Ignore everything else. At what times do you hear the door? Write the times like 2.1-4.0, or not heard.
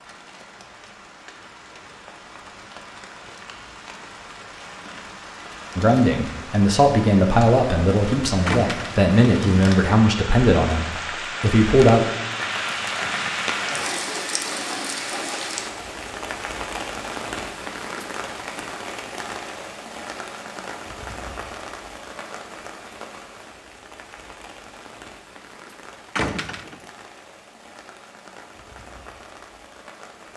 8.4-8.9, 26.1-26.8.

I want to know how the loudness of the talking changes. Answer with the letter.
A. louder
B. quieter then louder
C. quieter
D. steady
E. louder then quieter
D.